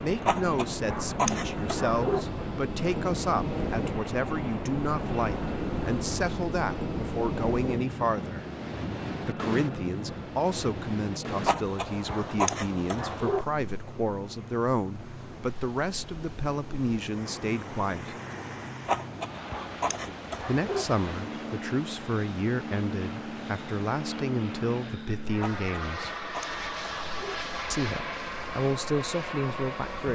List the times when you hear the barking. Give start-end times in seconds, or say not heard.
0.2-2.2, 11.4-13.4, 18.9-20.9, 25.4-27.4.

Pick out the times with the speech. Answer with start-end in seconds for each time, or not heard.
0.0-8.4, 9.2-18.1, 20.4-26.1, 27.7-30.1.